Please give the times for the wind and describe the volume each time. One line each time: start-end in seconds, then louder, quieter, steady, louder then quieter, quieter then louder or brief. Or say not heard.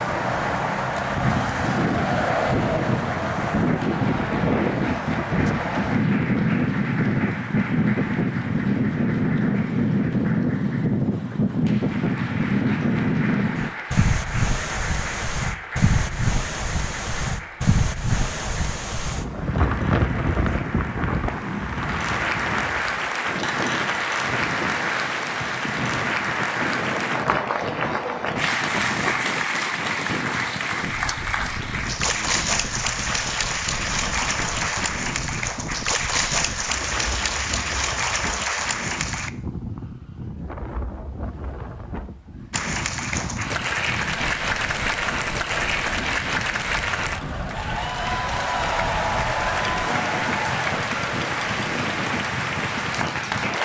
0.0-53.6 quieter.